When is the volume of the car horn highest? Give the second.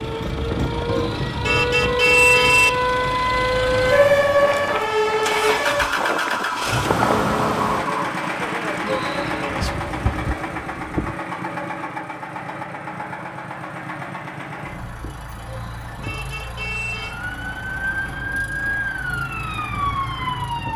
2 s.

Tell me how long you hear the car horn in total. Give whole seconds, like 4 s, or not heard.
4 s.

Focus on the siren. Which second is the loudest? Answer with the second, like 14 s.
4 s.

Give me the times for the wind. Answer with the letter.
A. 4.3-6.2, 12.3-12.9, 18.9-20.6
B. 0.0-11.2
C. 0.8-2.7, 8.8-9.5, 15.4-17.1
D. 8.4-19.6
B.